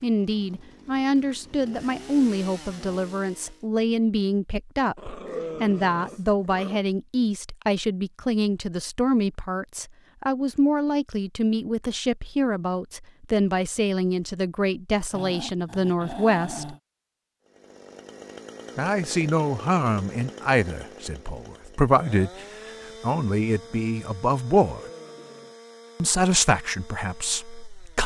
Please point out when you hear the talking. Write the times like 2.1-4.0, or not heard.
0.0-16.8, 18.8-24.8, 26.0-28.0.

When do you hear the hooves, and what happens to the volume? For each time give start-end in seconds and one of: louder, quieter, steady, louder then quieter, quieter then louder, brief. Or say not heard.
not heard.